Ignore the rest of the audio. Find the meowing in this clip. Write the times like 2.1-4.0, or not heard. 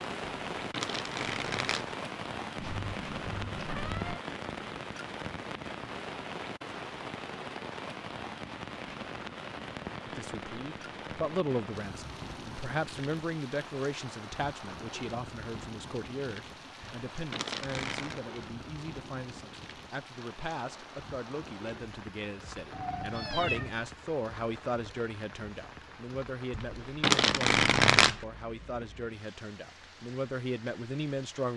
2.5-4.2, 22.7-23.8.